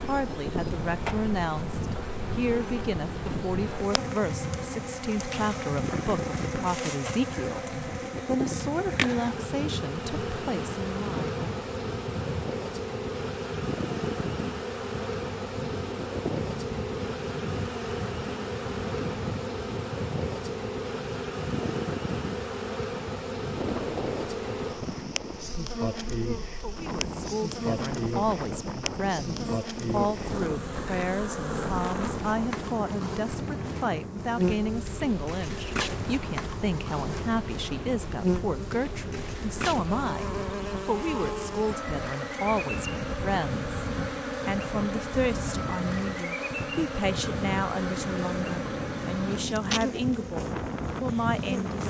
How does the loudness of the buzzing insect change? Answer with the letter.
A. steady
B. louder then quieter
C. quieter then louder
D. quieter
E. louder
A.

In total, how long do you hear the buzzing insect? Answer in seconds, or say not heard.
52 s.